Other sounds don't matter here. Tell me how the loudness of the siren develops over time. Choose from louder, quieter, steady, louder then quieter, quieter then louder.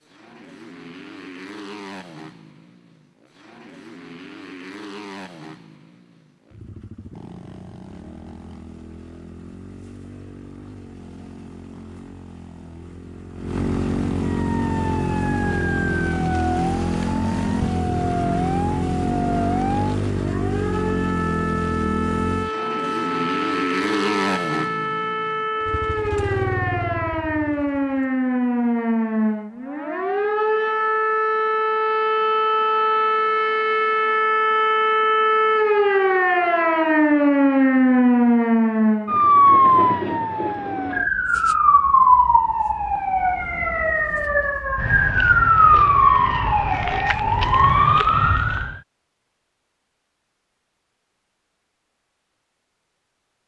louder.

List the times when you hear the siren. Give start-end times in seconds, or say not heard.
14.2-48.8.